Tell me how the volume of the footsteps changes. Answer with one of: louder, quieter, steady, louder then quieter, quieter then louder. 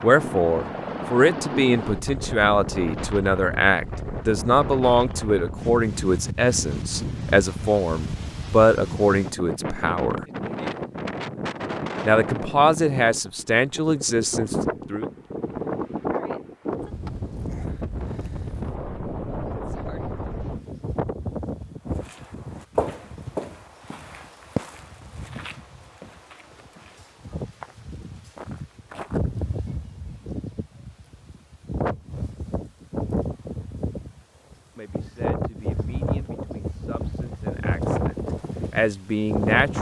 quieter then louder.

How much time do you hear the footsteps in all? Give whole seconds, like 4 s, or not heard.
7 s.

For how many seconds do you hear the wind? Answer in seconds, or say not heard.
40 s.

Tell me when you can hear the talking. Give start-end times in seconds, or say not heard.
0.0-10.2, 12.1-15.1, 34.4-39.7.